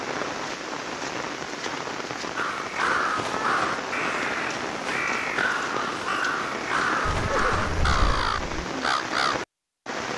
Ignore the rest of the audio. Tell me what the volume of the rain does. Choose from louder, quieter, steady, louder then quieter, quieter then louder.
steady.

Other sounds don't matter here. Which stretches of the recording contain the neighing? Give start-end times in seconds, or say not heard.
7.0-8.7.